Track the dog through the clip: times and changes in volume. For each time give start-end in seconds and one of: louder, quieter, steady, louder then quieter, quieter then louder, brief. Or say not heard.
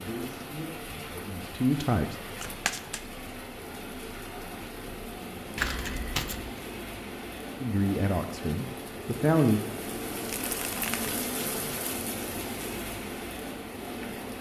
not heard.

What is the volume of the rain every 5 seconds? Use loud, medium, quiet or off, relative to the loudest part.
medium, loud, loud.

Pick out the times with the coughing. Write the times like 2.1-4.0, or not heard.
not heard.